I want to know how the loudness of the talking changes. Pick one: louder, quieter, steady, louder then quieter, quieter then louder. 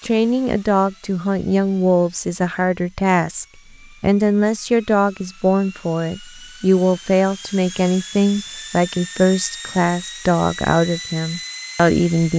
steady.